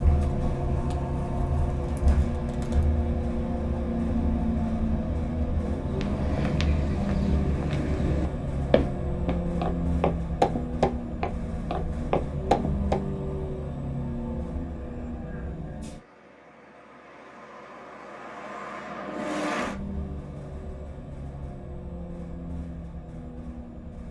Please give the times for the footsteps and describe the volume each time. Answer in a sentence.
The footsteps can be heard from 5.9 to 13.0 s, getting louder.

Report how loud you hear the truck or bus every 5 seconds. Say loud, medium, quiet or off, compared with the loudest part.
loud, loud, loud, medium, medium.